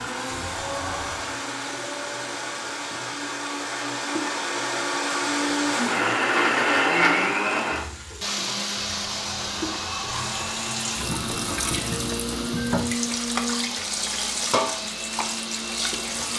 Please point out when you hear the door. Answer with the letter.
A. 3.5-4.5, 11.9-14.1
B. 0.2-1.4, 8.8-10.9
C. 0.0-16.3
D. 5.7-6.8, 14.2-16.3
B.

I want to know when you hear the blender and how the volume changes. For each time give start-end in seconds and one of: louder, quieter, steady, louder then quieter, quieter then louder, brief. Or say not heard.
0.0-16.3 louder then quieter.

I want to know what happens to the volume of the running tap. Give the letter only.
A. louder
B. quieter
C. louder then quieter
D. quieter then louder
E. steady
A.